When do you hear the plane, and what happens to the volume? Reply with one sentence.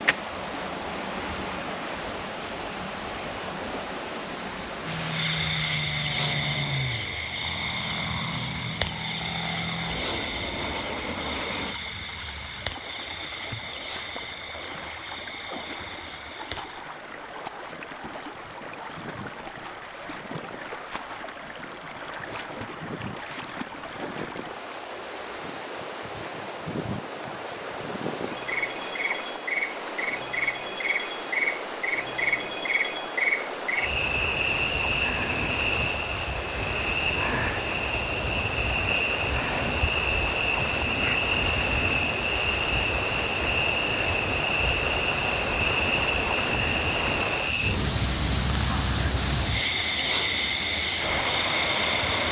The plane can be heard from 4.8 to 11.8 s, at a steady volume.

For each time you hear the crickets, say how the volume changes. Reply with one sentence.
The crickets can be heard from 0.0 to 52.2 s, getting quieter then louder.